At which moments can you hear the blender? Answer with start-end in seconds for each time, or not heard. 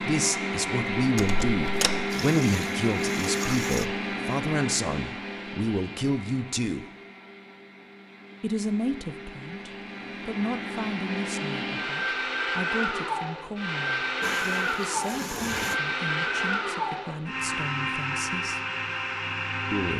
0.0-19.9.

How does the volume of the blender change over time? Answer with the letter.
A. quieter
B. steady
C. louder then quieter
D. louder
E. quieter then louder
E.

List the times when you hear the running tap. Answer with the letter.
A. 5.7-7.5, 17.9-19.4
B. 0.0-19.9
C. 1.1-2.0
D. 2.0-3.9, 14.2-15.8
D.